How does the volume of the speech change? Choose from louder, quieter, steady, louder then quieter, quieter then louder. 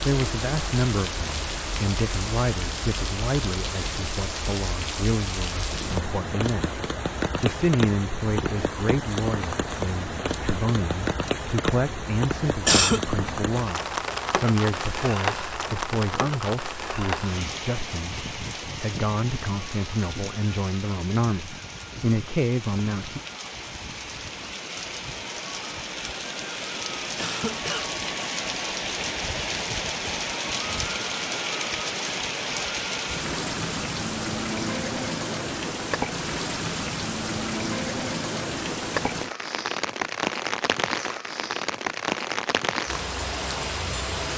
steady.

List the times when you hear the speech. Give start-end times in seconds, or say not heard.
0.0-23.2.